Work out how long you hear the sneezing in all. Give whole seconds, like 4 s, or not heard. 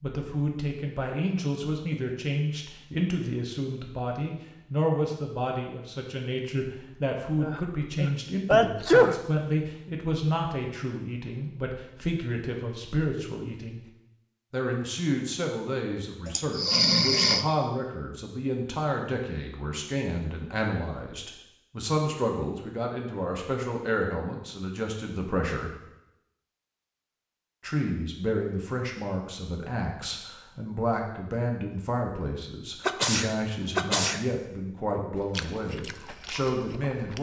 4 s.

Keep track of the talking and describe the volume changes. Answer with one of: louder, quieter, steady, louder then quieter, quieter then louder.
steady.